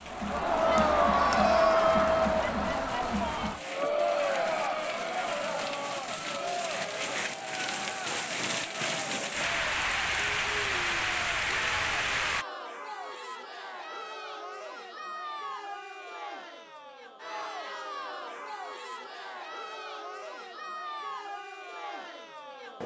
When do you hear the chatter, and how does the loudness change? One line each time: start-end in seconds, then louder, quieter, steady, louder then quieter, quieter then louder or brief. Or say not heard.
0.0-22.8 quieter.